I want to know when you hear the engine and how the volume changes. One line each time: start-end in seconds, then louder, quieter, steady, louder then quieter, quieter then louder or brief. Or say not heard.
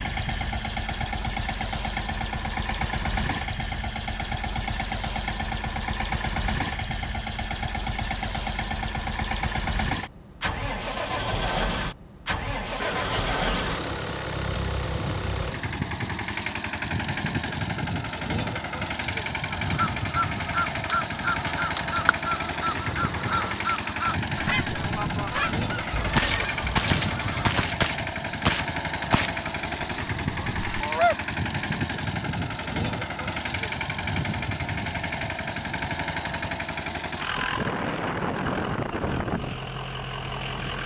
0.0-40.8 steady.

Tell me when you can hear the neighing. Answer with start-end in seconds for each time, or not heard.
12.8-13.9, 25.9-27.6.